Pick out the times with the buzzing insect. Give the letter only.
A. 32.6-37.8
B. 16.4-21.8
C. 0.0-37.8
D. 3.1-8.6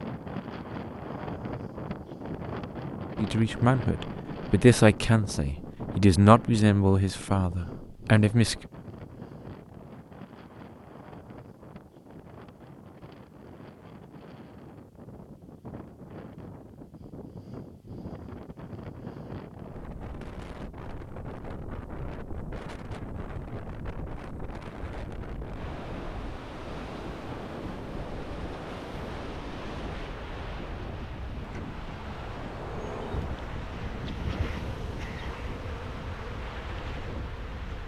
A.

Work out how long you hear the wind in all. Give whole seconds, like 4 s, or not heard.
38 s.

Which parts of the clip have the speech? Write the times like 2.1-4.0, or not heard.
3.1-8.6.